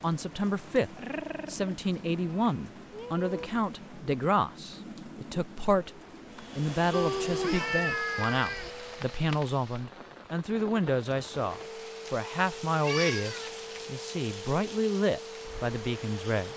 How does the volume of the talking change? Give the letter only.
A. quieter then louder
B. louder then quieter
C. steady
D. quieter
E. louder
C.